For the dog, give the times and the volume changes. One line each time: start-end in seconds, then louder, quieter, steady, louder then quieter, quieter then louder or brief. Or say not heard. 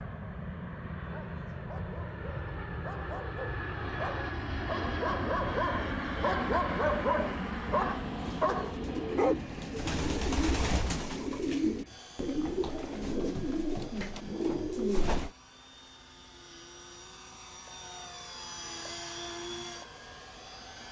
1.0-9.3 louder.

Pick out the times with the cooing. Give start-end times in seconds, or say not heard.
8.1-15.3.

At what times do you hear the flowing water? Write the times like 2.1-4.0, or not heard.
not heard.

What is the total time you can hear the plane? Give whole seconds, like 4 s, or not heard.
21 s.